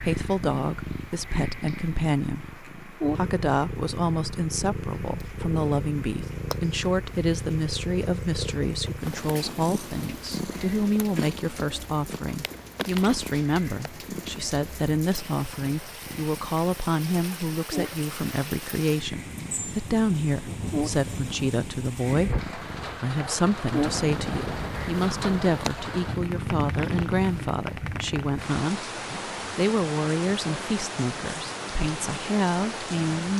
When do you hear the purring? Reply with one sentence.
You can hear the purring from 0.0 to 27.6 s.